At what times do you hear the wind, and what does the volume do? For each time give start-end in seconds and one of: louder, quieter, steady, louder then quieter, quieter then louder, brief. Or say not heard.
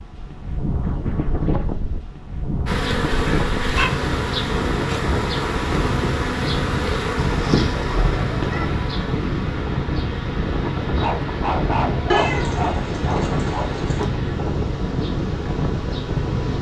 0.0-16.5 steady.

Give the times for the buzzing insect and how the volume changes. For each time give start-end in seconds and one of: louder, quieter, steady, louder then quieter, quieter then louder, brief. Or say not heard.
2.6-16.5 quieter.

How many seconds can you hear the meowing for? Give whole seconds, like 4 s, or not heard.
4 s.